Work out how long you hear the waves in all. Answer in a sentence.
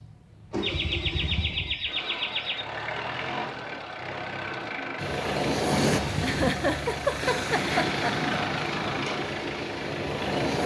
The waves can be heard for 6 seconds in total.